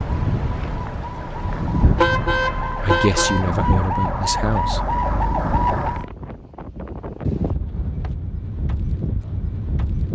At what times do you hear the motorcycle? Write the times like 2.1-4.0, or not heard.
not heard.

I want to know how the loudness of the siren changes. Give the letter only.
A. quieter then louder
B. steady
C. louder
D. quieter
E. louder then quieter
C.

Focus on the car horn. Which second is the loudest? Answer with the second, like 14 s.
2 s.